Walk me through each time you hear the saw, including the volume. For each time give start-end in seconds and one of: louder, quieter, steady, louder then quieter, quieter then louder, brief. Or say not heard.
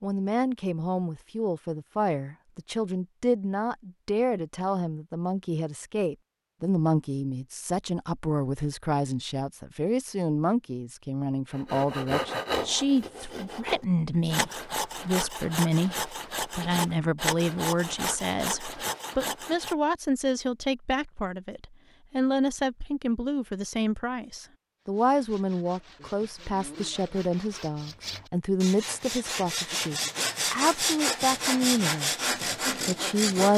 11.5-19.8 steady
24.8-33.5 louder.